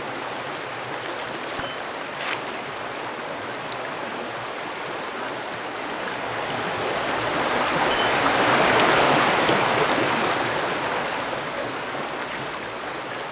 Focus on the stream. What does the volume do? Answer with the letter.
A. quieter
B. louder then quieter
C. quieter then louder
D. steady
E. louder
B.